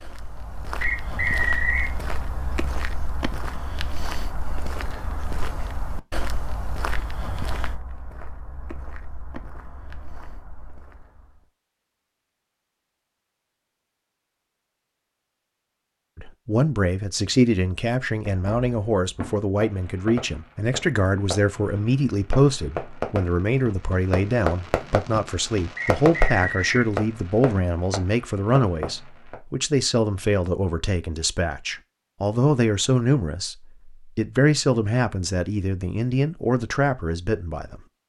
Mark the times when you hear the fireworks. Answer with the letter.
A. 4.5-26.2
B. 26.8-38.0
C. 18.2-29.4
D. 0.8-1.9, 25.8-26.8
C.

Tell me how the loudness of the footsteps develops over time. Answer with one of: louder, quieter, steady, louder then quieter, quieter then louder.
quieter.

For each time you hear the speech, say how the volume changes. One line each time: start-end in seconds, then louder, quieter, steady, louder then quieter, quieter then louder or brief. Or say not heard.
16.1-37.8 steady.